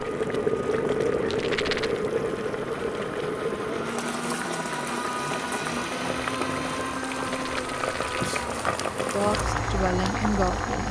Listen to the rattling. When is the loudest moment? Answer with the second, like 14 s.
2 s.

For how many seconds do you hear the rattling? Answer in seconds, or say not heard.
2 s.